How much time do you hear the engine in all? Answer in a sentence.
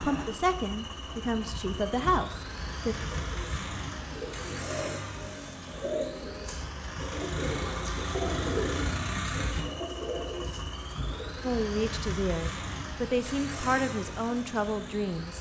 The engine can be heard for 15 seconds in total.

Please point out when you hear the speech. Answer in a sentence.
You can hear the speech from 0.0 to 3.0 s and from 11.4 to 15.3 s.